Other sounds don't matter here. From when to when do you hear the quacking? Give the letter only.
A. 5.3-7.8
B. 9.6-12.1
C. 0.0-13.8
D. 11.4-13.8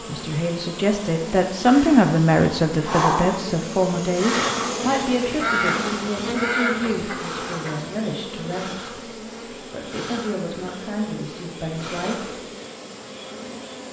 A.